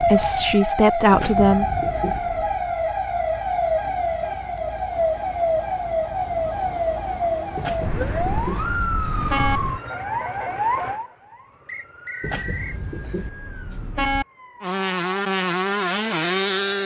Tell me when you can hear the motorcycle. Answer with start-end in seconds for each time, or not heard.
14.6-16.8.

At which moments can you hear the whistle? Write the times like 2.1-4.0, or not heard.
11.7-12.8.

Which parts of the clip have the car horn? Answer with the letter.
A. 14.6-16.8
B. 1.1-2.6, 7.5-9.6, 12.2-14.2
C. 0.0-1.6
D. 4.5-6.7
B.